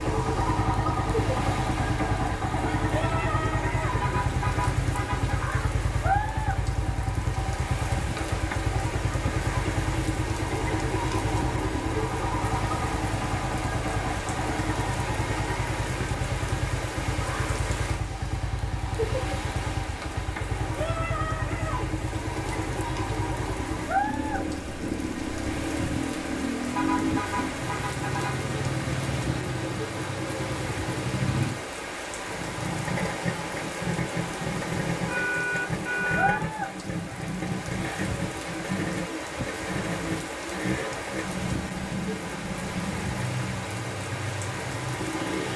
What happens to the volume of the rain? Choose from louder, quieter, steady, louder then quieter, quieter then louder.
steady.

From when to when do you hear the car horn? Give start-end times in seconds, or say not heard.
3.9-5.4, 26.6-28.5, 35.0-36.5.